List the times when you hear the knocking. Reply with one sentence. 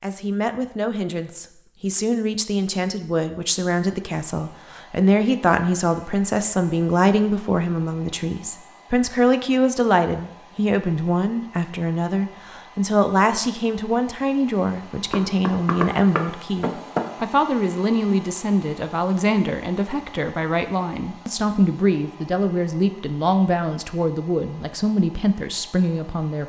You can hear the knocking from 15.1 to 17.2 s.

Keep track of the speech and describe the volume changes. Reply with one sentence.
The loudness of the speech stays about the same.